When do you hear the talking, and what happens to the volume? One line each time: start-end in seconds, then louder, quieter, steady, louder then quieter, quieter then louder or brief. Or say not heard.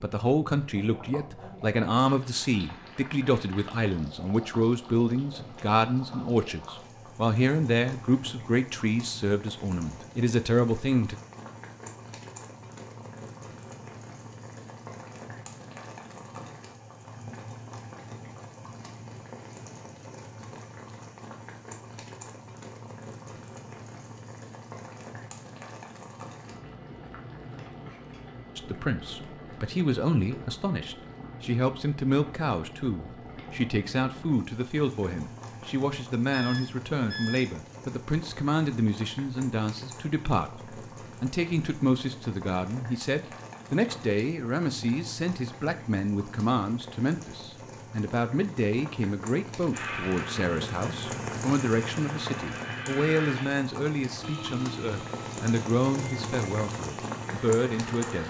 0.0-11.2 steady
28.6-58.2 steady.